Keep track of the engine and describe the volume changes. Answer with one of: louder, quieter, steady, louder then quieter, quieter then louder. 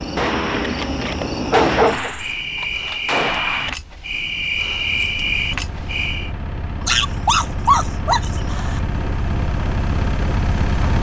louder.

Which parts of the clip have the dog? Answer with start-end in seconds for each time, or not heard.
0.2-2.1, 6.8-8.8.